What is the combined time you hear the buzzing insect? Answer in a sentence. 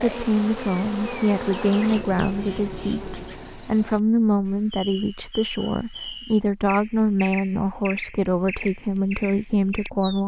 The buzzing insect can be heard for 4 seconds in total.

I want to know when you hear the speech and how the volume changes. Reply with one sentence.
You can hear the speech from 0.0 to 10.2 s, at a steady volume.